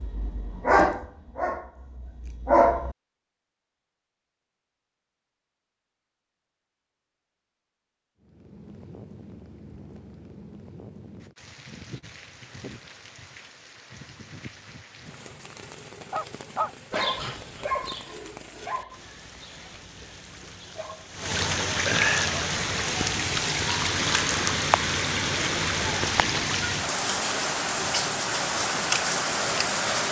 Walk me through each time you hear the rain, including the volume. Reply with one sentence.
You can hear the rain from 8.2 to 30.0 s, getting louder.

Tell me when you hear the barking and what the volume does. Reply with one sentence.
You can hear the barking briefly from 0.0 to 3.0 s; and from 16.1 to 21.1 s, getting quieter.